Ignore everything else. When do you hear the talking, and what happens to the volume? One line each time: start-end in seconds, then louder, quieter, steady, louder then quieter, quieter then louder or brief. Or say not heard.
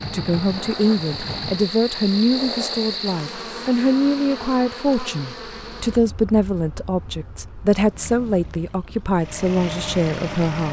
0.1-10.6 steady.